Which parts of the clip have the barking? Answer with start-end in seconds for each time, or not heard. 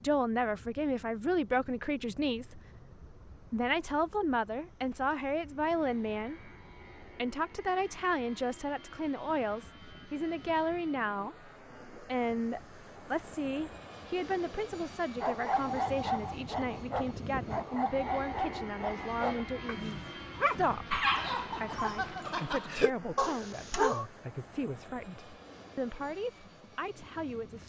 15.2-24.1.